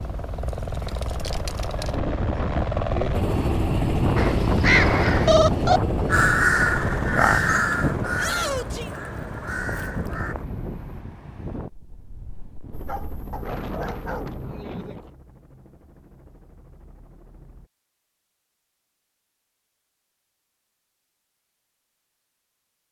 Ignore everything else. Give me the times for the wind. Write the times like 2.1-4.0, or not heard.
0.0-15.2.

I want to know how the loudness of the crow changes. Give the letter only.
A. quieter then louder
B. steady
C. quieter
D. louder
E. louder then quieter
C.